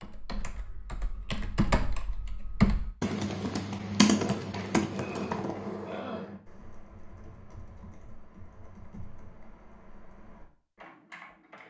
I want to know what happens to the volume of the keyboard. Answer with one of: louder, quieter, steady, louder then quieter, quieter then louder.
louder then quieter.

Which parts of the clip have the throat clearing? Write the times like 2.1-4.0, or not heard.
4.0-6.3.